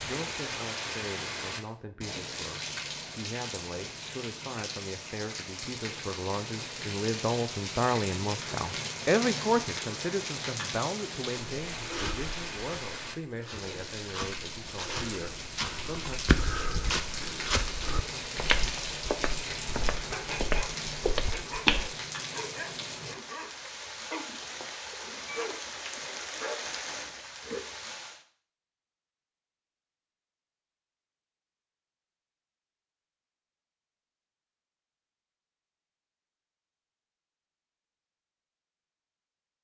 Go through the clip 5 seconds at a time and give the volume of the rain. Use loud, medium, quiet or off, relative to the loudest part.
loud, loud, loud, loud, loud, loud, off, off.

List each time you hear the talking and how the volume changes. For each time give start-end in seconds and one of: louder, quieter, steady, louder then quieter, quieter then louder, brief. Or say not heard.
0.0-16.2 louder then quieter.